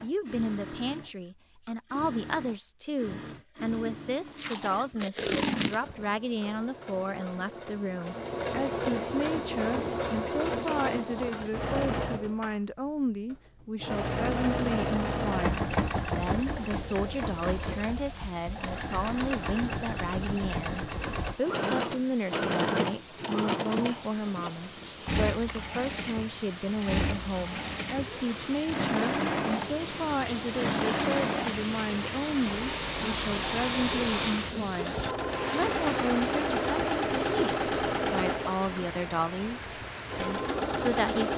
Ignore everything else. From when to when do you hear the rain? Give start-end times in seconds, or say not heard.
15.5-41.3.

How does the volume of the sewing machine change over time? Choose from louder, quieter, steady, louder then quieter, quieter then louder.
louder.